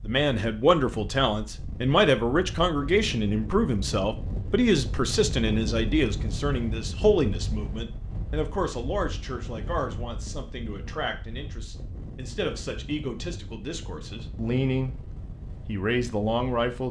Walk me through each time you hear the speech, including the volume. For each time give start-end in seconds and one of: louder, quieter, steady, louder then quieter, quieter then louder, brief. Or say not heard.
0.0-15.1 quieter
15.7-16.8 brief.